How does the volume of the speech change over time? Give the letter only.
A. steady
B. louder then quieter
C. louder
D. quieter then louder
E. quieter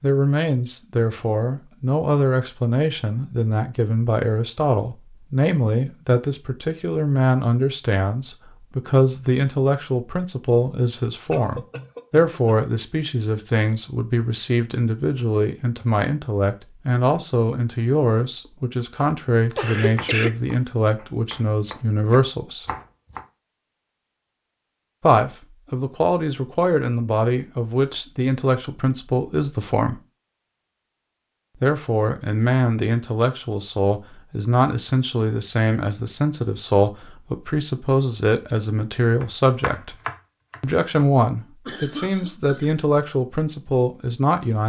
A.